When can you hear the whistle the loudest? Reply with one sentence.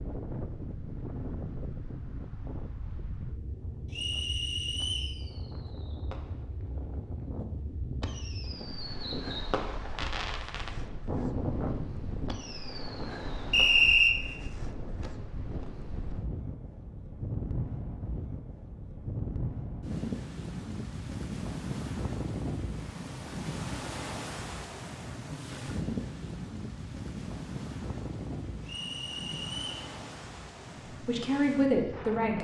The loudest moment of the whistle is at 14 seconds.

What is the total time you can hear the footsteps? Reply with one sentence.
You can't hear the footsteps here.